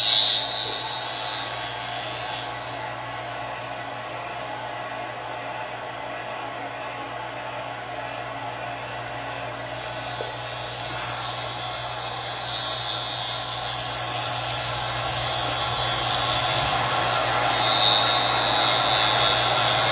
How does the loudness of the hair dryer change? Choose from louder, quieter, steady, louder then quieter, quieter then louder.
louder.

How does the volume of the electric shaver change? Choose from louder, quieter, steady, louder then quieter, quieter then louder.
quieter then louder.